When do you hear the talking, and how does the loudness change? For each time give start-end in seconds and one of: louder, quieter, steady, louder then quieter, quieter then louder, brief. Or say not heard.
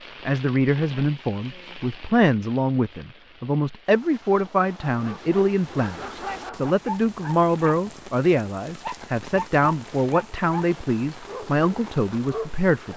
0.2-12.9 steady.